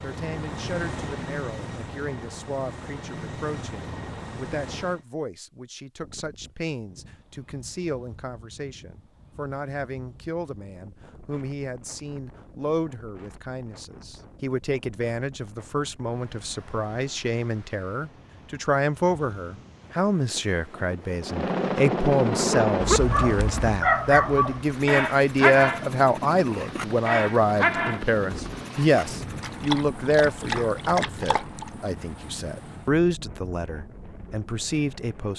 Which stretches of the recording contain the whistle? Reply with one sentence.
The whistle can't be heard in this clip.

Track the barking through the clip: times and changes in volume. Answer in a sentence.
The barking can be heard from 22.7 to 31.7 s, getting quieter then louder.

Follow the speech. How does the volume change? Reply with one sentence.
The volume of the speech goes up.